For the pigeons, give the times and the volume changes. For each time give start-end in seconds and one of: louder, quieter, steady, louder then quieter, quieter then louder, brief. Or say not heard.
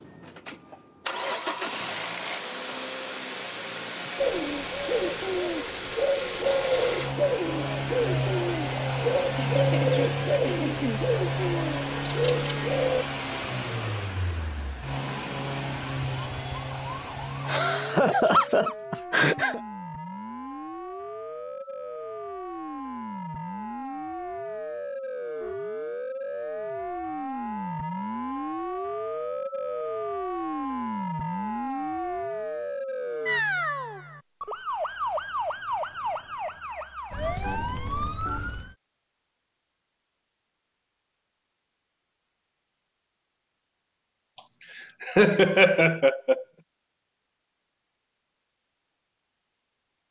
4.2-13.1 steady.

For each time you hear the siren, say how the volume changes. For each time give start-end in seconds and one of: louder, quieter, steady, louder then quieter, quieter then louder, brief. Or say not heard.
15.1-38.8 louder.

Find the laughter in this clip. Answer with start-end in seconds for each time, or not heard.
9.3-11.0, 17.4-19.6, 44.8-46.5.